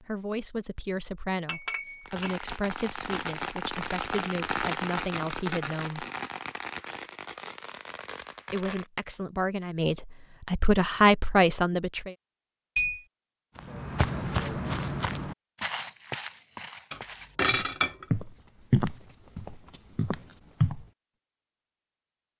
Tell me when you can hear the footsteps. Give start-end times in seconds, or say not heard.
13.6-20.9.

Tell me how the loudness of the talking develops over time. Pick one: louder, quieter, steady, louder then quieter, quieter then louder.
louder.